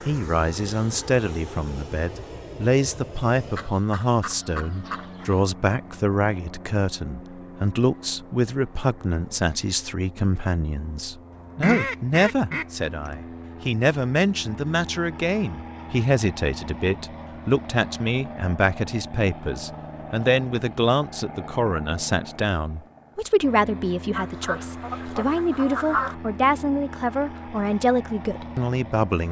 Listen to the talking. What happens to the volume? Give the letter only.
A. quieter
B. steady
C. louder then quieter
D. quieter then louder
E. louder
B.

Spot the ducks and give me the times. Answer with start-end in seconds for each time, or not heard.
3.5-5.5, 11.6-13.1, 24.1-26.1.